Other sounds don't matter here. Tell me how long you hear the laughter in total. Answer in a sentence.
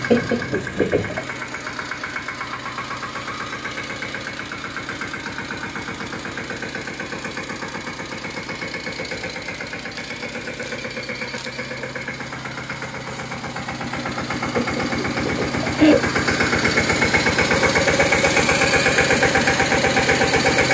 You can hear the laughter for 3 seconds altogether.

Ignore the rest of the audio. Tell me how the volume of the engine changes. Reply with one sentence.
The loudness of the engine goes up.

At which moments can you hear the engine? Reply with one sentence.
You can hear the engine from 0.0 to 20.7 s.